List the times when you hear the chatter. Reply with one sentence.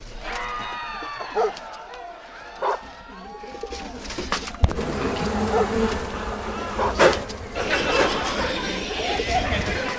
The chatter can be heard from 0.1 to 9.9 s.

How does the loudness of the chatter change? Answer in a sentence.
The loudness of the chatter goes down, then up.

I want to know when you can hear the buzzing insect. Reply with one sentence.
The buzzing insect can be heard from 4.8 to 9.9 s.